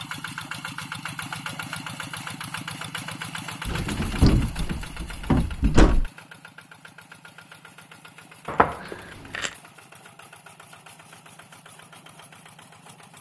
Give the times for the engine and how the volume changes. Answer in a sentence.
The engine can be heard from 0.0 to 13.1 s, getting quieter.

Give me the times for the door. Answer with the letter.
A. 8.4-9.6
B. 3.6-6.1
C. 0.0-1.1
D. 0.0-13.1
B.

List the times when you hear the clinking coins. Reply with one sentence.
You can hear the clinking coins from 8.4 to 9.6 s.